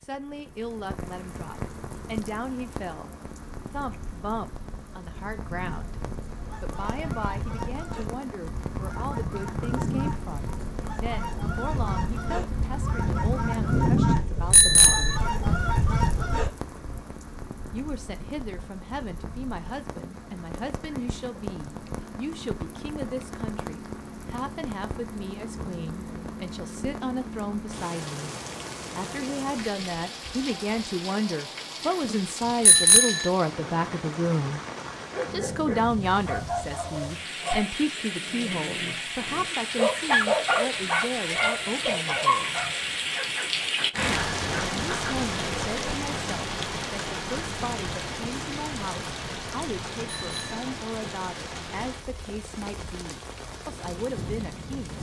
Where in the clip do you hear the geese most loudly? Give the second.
14 s.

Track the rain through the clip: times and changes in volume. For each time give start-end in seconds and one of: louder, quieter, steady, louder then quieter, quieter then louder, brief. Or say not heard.
0.0-54.9 louder.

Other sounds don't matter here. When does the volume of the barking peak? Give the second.
40 s.